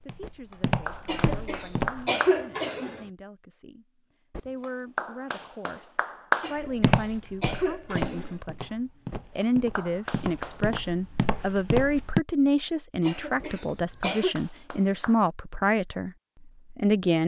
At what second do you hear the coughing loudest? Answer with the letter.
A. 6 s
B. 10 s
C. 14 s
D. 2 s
D.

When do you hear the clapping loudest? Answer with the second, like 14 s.
6 s.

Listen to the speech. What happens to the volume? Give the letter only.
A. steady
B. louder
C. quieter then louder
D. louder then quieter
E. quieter
B.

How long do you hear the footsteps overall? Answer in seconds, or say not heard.
8 s.